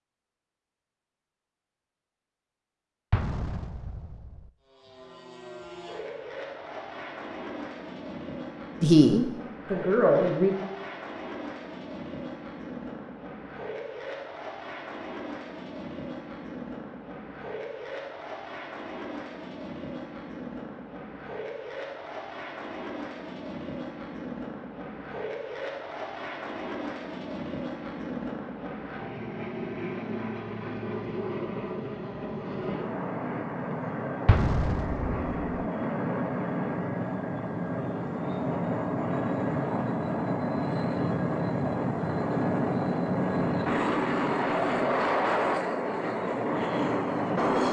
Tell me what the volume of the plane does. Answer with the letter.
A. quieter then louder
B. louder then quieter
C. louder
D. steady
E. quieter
C.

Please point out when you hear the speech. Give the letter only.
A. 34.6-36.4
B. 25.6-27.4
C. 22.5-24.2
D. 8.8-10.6
D.